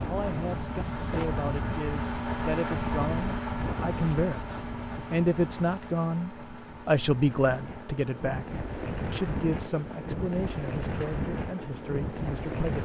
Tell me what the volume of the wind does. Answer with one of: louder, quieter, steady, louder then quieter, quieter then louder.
quieter then louder.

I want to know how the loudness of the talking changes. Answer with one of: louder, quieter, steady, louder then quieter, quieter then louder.
louder then quieter.